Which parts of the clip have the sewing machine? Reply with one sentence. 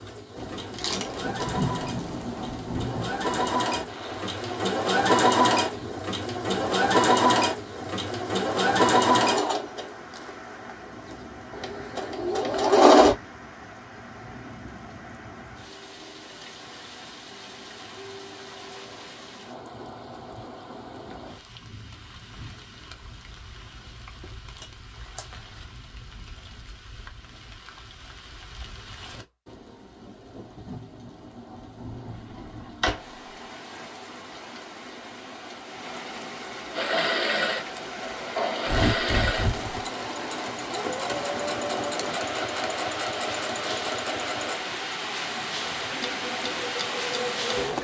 You can hear the sewing machine from 0.0 to 13.2 s and from 36.7 to 47.7 s.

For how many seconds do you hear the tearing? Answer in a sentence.
You can hear the tearing for 3 seconds altogether.